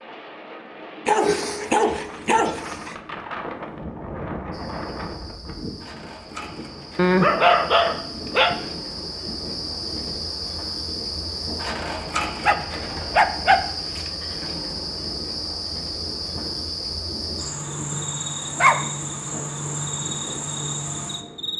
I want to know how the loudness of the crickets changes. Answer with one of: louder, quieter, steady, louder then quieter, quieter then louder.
louder.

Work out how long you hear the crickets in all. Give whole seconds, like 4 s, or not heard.
17 s.